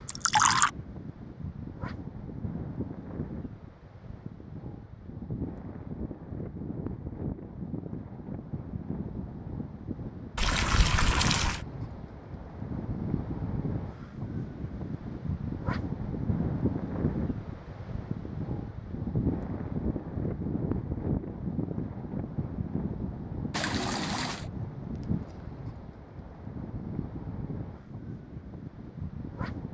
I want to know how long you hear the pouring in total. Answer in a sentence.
You can hear the pouring for 3 seconds altogether.